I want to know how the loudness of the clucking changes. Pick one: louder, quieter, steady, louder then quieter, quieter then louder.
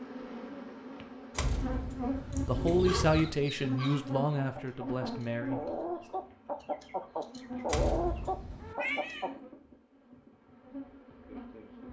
louder.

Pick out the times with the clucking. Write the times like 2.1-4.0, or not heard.
2.8-9.3.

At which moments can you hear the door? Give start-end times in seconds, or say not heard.
1.4-2.4, 7.7-8.8.